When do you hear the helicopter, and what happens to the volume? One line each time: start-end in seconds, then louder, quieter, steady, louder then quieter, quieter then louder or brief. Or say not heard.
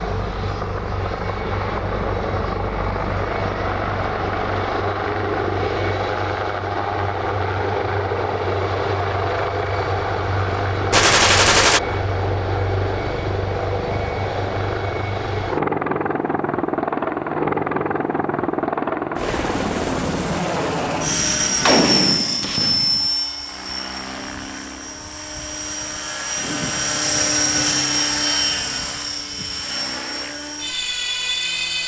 0.0-31.8 steady.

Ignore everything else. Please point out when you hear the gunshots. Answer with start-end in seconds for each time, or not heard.
10.9-11.8, 21.6-23.1.